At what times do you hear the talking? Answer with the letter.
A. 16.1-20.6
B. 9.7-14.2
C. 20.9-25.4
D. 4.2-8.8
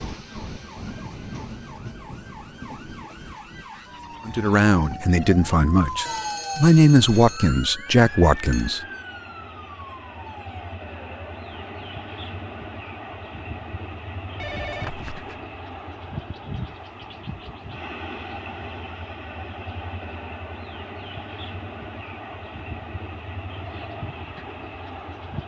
D.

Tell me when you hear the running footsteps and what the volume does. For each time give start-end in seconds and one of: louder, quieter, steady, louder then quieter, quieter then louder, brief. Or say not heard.
not heard.